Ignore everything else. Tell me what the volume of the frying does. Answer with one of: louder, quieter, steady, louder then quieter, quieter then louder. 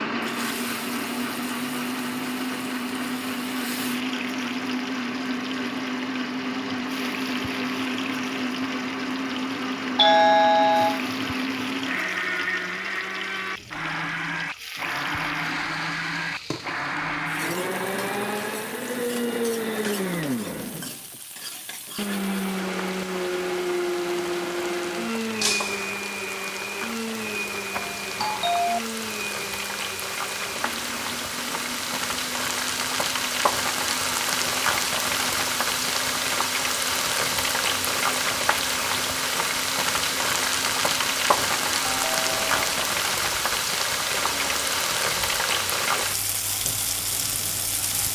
louder.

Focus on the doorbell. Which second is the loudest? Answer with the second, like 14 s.
10 s.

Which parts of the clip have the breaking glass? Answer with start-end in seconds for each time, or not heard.
25.4-25.9.